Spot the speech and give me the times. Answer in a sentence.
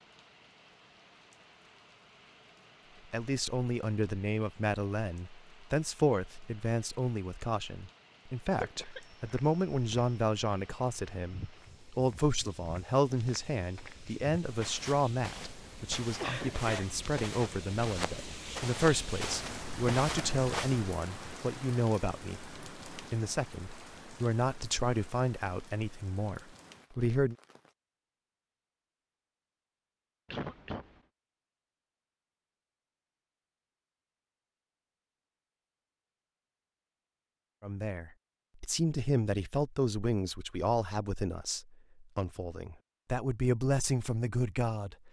The speech can be heard from 3.1 to 27.4 s and from 37.6 to 45.0 s.